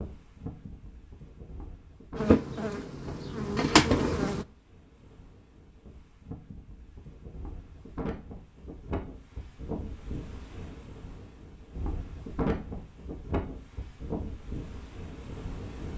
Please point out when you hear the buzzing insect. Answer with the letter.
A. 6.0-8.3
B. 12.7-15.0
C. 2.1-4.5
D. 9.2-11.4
C.